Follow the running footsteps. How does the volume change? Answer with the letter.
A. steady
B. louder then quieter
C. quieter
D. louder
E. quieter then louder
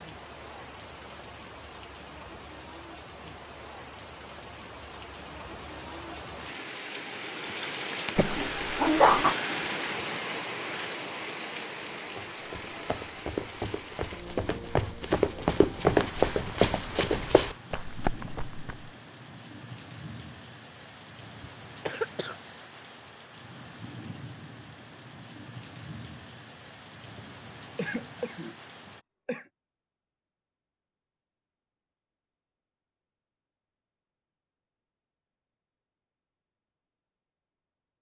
B.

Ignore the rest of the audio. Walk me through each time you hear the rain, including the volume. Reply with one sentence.
You can hear the rain from 0.0 to 29.1 s, getting louder then quieter.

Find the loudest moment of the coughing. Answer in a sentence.
The loudest moment of the coughing is at 9 seconds.